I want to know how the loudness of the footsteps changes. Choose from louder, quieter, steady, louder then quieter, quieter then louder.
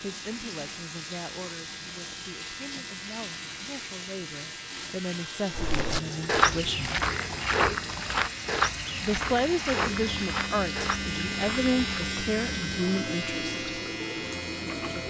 quieter.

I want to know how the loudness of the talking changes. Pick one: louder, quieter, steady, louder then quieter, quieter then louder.
louder.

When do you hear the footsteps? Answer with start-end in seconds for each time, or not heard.
5.5-12.1.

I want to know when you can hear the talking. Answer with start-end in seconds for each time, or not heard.
0.0-6.9, 9.0-13.6.